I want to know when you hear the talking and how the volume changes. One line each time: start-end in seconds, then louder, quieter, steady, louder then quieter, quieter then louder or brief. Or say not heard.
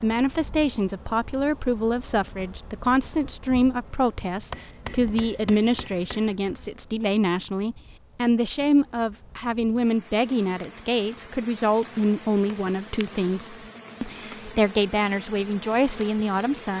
0.0-16.7 steady.